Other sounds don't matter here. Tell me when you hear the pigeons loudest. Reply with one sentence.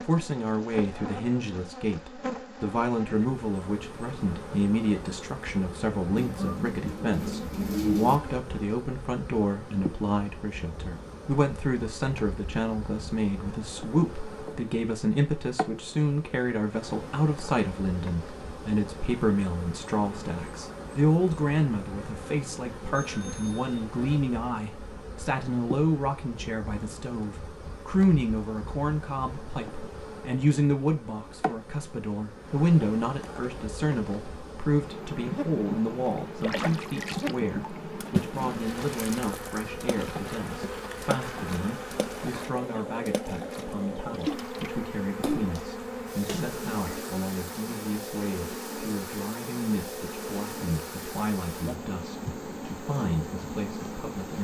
The volume of the pigeons peaks at 8 seconds.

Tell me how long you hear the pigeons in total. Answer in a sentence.
You can hear the pigeons for 2 seconds altogether.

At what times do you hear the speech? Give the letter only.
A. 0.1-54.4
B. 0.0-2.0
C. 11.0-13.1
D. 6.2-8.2
A.